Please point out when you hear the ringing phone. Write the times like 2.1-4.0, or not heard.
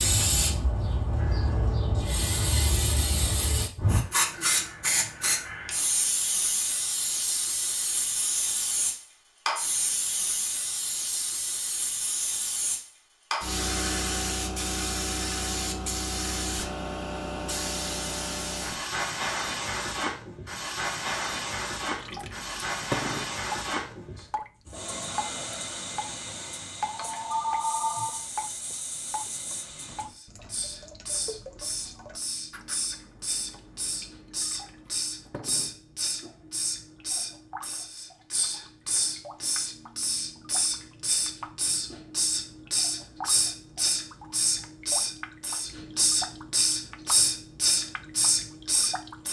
26.9-28.2.